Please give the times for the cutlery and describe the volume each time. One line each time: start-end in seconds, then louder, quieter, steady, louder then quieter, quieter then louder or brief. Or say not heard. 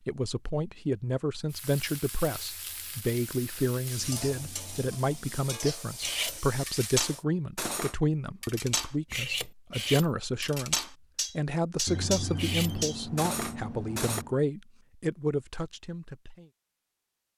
6.0-14.2 steady.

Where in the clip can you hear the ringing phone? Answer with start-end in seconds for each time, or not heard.
4.0-5.4, 11.8-14.3.